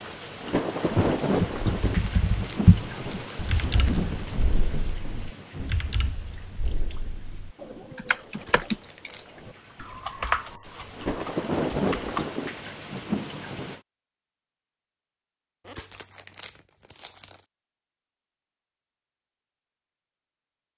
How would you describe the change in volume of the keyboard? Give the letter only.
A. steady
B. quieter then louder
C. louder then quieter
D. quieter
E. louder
B.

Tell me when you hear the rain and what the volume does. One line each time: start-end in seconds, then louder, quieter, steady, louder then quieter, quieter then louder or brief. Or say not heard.
0.0-13.8 quieter then louder.